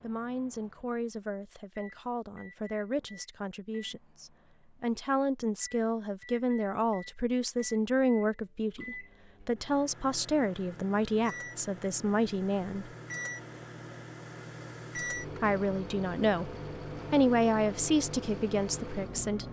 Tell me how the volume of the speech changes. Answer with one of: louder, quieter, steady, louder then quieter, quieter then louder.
louder.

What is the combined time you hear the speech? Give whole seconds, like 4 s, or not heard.
17 s.